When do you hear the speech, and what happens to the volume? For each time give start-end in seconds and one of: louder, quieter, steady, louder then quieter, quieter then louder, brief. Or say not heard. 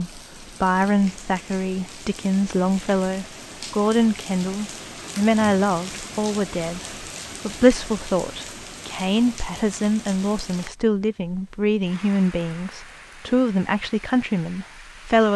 0.0-15.3 steady.